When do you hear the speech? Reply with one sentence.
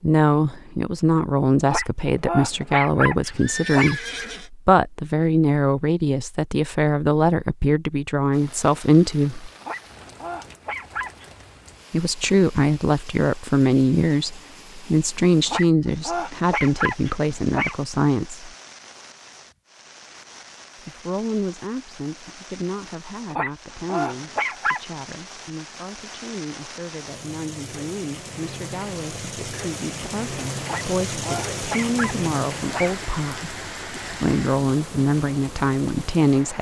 You can hear the speech from 0.0 to 9.5 s, from 11.9 to 18.5 s and from 20.9 to 36.5 s.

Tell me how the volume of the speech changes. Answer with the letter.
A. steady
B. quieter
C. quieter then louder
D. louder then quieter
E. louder
C.